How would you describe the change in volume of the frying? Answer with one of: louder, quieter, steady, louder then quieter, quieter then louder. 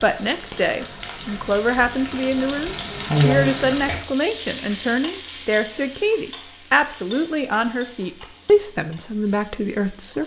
louder then quieter.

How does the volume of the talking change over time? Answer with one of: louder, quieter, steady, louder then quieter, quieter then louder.
steady.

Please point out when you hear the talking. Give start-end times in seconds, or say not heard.
0.0-10.2.